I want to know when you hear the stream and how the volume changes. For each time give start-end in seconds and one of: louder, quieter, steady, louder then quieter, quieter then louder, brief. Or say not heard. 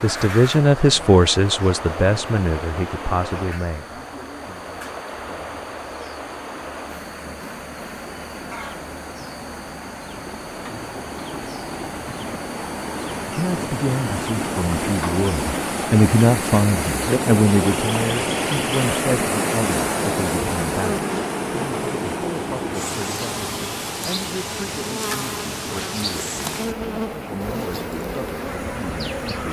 0.0-29.4 louder then quieter.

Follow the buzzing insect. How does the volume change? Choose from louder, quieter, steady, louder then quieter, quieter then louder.
louder.